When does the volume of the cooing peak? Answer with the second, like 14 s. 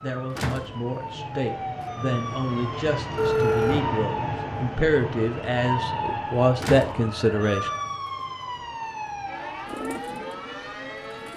10 s.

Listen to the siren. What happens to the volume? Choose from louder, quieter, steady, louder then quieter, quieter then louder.
steady.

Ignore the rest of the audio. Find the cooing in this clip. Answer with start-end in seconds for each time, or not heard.
9.7-11.3.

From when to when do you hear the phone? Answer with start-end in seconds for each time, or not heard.
3.1-3.9, 7.0-7.9.